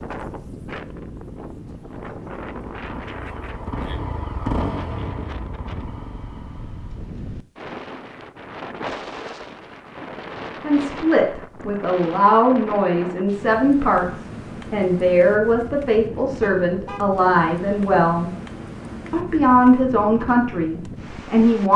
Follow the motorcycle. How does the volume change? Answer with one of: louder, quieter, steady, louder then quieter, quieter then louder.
louder then quieter.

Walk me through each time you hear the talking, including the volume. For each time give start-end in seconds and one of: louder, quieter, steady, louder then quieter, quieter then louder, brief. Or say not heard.
10.6-18.3 steady
19.1-21.7 brief.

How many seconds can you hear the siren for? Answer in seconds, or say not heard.
not heard.